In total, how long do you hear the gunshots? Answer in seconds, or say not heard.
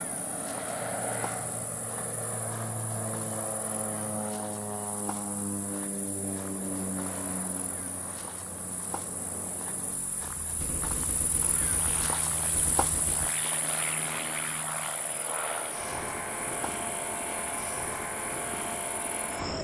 3 s.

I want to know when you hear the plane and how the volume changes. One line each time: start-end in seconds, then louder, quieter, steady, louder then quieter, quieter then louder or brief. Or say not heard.
0.0-19.5 quieter then louder.